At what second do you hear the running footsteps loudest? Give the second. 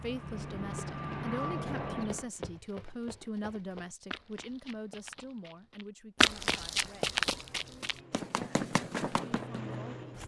6 s.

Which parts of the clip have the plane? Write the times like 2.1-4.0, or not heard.
0.0-2.3, 6.9-10.2.